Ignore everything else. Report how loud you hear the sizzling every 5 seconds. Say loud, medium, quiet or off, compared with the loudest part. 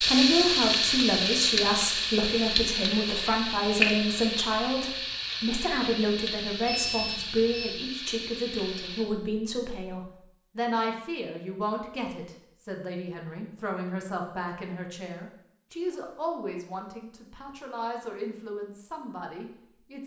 loud, medium, off, off.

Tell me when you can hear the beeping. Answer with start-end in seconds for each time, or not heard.
6.7-7.8.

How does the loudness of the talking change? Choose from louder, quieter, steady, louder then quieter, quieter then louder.
quieter.